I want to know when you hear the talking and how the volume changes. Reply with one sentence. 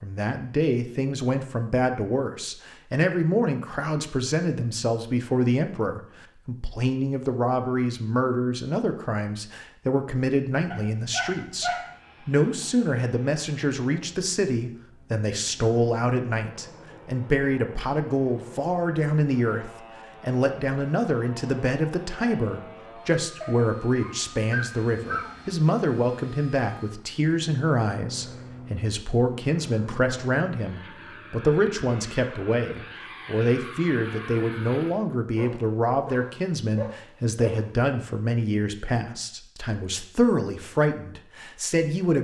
You can hear the talking from 0.0 to 42.1 s, at a steady volume.